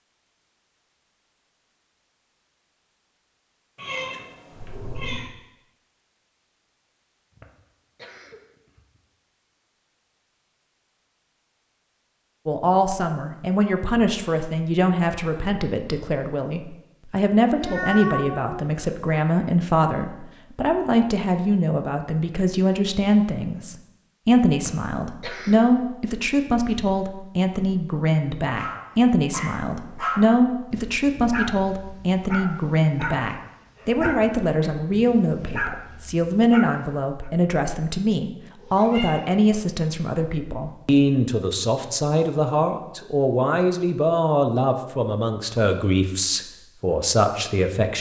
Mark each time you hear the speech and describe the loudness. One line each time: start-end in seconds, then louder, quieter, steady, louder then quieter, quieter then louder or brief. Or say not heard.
12.4-47.9 steady.